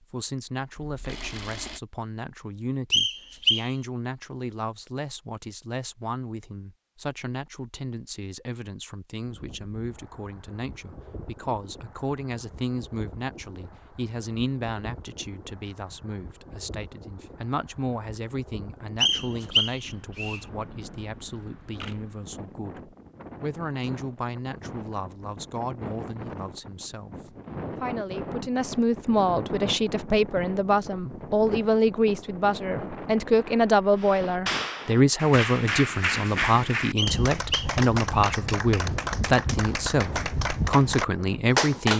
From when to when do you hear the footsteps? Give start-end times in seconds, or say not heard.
not heard.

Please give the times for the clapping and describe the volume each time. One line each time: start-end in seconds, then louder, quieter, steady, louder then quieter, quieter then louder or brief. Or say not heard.
34.0-41.9 steady.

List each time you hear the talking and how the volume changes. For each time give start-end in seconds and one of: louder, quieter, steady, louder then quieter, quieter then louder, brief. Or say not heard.
0.0-41.9 louder.